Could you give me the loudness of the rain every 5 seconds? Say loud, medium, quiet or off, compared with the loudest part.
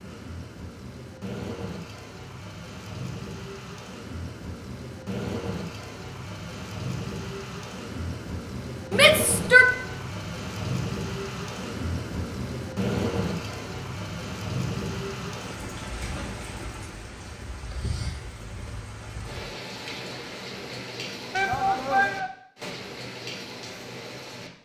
medium, loud, loud, medium, medium.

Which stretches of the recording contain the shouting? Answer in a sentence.
The shouting can be heard from 8.9 to 9.7 s and from 21.3 to 22.3 s.